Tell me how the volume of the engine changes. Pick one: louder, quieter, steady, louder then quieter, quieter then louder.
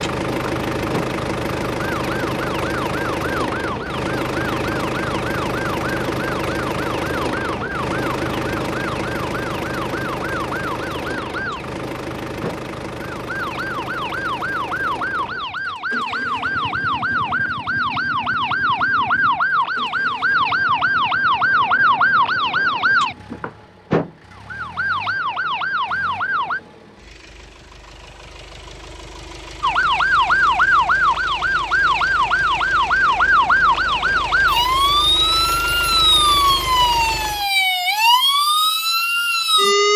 quieter then louder.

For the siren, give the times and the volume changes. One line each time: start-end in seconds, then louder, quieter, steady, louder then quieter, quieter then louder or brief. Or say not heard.
0.0-26.6 louder
29.6-39.9 steady.